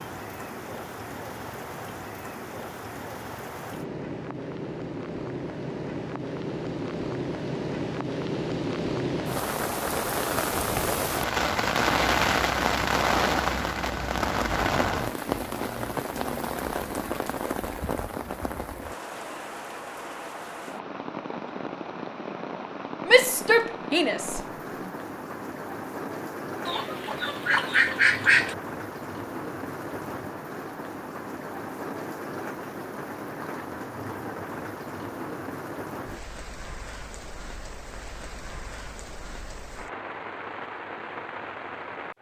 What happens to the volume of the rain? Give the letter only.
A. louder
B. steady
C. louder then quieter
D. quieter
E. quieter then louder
C.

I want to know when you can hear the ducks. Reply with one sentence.
The ducks can be heard from 26.6 to 28.6 s.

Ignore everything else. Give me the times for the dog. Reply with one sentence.
You can't hear the dog here.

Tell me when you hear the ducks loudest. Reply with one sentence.
The volume of the ducks peaks at 28 seconds.